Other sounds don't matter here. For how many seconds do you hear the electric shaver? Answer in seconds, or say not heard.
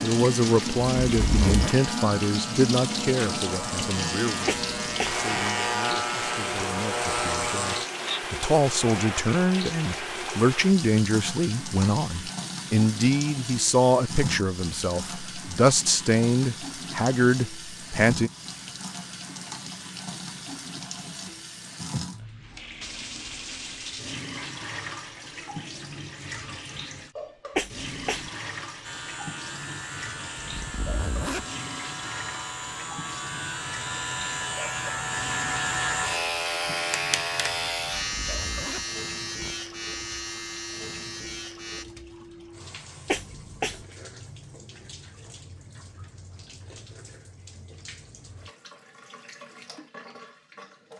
21 s.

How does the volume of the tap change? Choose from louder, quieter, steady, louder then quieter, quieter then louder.
quieter.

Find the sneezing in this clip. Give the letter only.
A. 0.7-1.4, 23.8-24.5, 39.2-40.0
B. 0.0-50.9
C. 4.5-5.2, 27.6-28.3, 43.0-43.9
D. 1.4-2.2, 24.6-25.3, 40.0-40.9
C.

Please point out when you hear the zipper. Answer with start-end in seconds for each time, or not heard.
1.1-1.8, 30.4-31.4, 37.8-39.5.